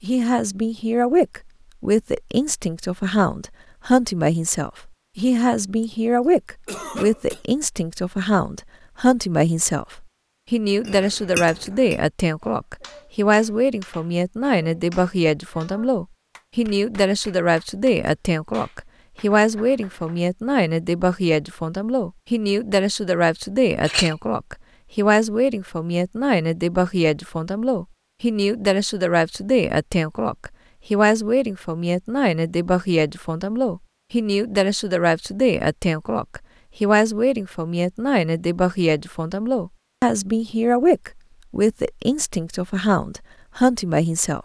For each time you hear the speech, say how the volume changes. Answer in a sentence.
The speech can be heard from 0.0 to 44.4 s, at a steady volume.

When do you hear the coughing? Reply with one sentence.
You can hear the coughing from 6.7 to 7.5 s.